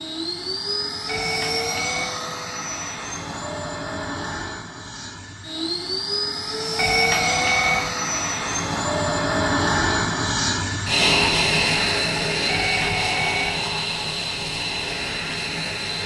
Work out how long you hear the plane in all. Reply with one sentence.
You can hear the plane for 16 seconds altogether.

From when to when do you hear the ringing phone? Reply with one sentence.
The ringing phone can be heard from 1.1 to 2.1 s, from 6.8 to 7.9 s and from 12.4 to 13.6 s.